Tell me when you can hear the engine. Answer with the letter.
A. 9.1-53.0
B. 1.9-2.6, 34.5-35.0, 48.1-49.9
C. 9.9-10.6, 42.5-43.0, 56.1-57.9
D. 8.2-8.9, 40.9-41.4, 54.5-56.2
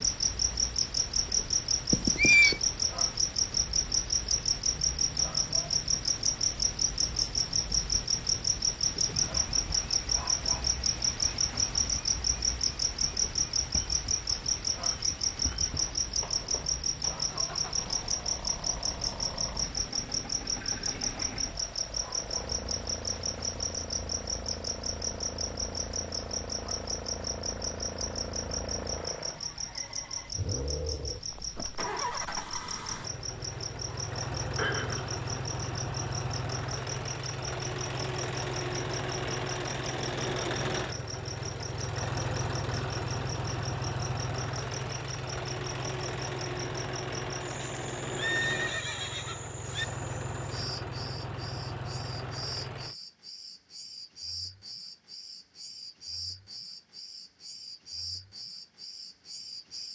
A.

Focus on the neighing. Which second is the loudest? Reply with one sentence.
The loudest moment of the neighing is at 2 seconds.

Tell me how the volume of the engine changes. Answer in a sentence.
The volume of the engine goes up.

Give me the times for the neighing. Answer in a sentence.
You can hear the neighing from 1.9 to 2.6 s, from 34.5 to 35.0 s and from 48.1 to 49.9 s.